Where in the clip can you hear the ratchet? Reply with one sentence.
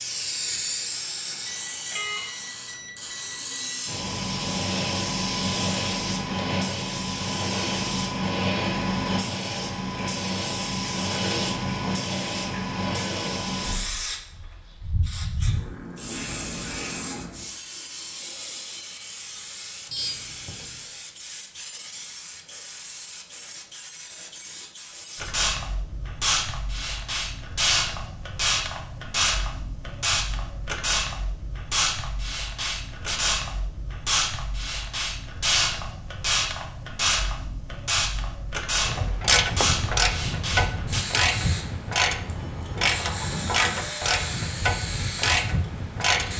You can hear the ratchet from 38.9 to 46.3 s.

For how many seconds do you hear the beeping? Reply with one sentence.
The beeping can be heard for 5 seconds in total.